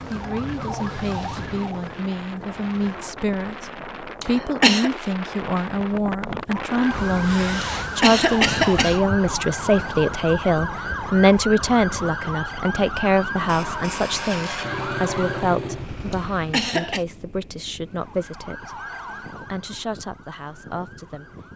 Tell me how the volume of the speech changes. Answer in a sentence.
The volume of the speech goes up, then down.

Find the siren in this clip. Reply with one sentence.
You can hear the siren from 0.0 to 3.2 s, from 6.7 to 15.6 s and from 17.8 to 21.5 s.